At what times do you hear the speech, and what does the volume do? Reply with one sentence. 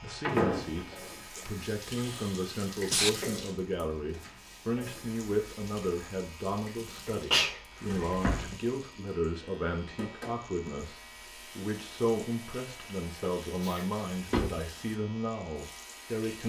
The speech can be heard from 0.0 to 16.4 s, at a steady volume.